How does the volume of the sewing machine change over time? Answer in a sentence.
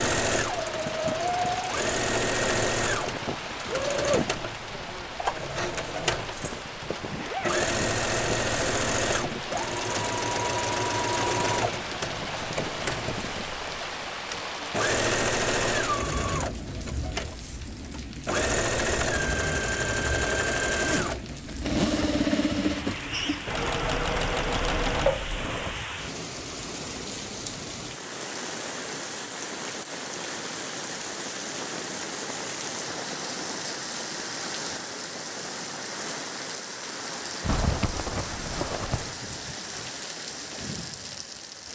The loudness of the sewing machine stays about the same.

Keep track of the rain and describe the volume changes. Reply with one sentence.
The loudness of the rain stays about the same.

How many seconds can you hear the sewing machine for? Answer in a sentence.
The sewing machine can be heard for 26 seconds in total.